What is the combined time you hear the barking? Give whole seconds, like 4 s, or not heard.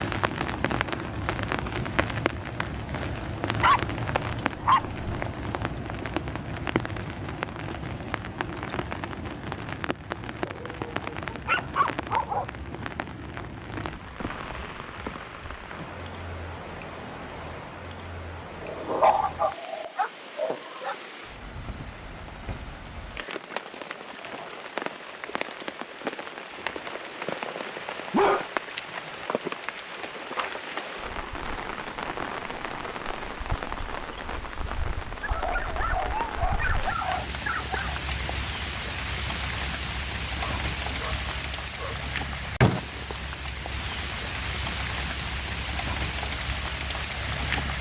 11 s.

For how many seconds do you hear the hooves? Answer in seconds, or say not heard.
not heard.